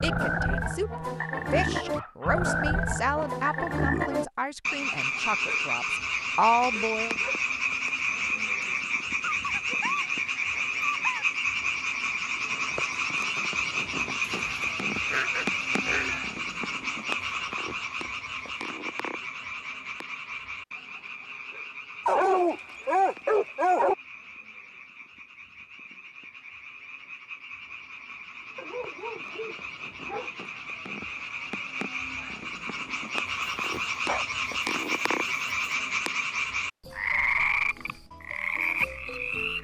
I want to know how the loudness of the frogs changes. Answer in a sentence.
The volume of the frogs goes down, then up.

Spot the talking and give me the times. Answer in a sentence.
The talking can be heard from 0.0 to 7.2 s.